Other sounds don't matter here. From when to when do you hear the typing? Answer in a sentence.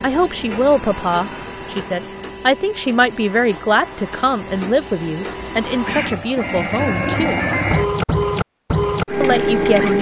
The typing can't be heard in this clip.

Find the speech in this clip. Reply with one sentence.
You can hear the speech from 0.0 to 7.4 s and from 9.2 to 9.9 s.